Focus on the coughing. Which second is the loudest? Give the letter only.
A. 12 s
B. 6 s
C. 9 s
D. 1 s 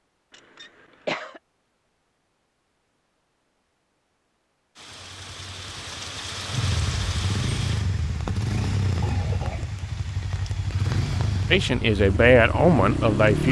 D.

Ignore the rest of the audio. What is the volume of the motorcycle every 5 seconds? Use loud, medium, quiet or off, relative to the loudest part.
off, loud, loud.